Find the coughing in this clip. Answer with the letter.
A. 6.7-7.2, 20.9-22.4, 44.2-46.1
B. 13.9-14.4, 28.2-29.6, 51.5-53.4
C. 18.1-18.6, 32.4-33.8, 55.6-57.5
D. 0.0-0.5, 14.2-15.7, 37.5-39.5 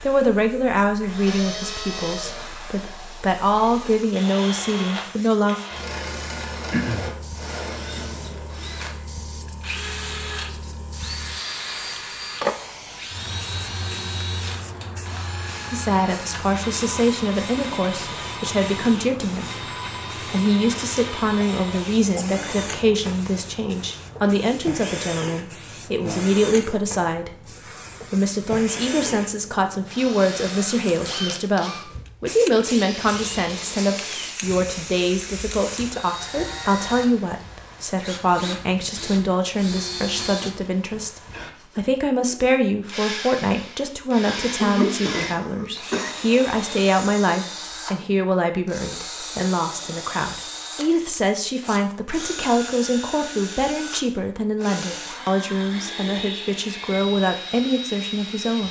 A.